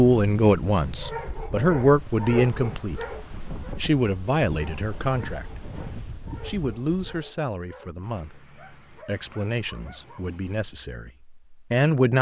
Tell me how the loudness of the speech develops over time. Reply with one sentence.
The volume of the speech goes down, then up.